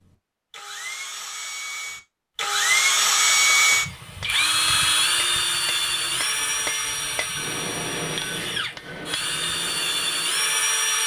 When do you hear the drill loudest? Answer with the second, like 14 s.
3 s.